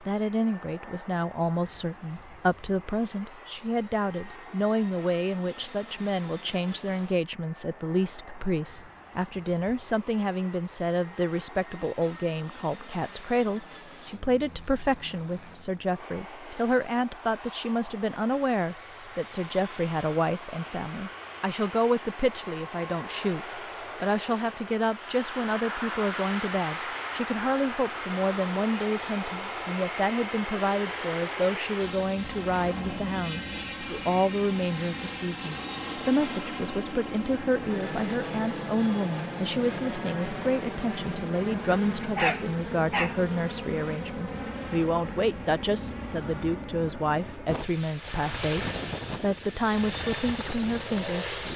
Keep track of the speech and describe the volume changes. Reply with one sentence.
The volume of the speech stays about the same.